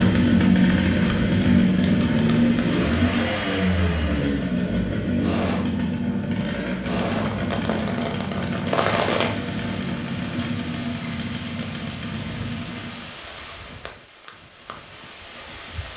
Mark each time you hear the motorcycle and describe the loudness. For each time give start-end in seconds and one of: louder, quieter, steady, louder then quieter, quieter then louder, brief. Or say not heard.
0.0-13.2 quieter.